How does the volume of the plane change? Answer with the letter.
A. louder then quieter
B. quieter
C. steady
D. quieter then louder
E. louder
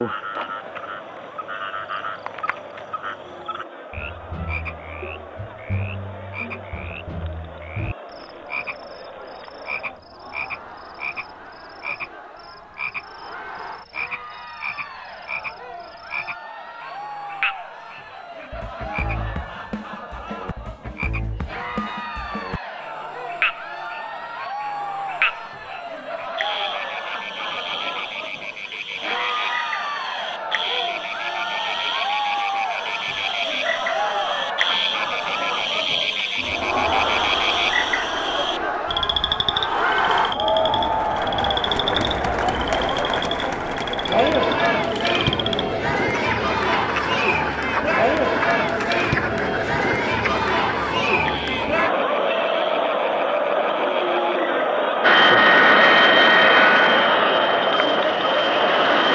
B.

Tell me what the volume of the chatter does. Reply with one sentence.
The loudness of the chatter goes up.